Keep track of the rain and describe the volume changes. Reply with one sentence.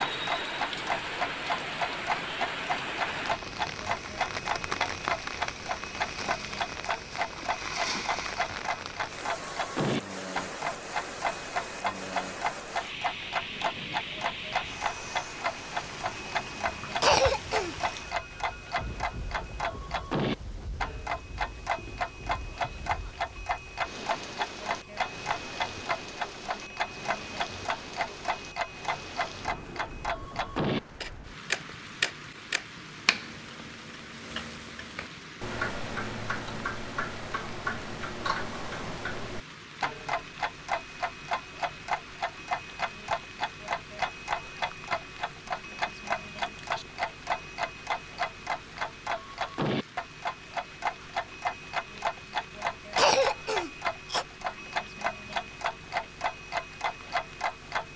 The loudness of the rain goes down.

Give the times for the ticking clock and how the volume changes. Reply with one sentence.
The ticking clock can be heard from 0.0 to 57.9 s, at a steady volume.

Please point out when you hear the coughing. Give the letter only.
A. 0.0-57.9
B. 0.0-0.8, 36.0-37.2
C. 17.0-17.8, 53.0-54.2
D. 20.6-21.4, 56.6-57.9
C.